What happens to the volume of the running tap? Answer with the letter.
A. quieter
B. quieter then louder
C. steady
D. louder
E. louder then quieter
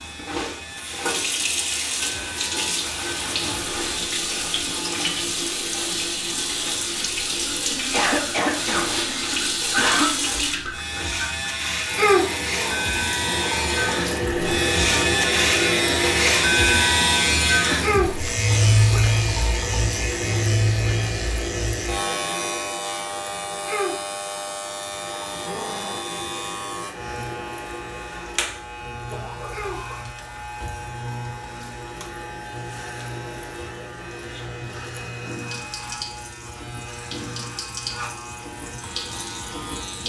A.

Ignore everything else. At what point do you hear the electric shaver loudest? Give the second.
17 s.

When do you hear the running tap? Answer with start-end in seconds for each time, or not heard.
0.0-40.0.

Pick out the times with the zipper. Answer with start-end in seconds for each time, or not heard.
12.3-12.9, 25.3-26.1.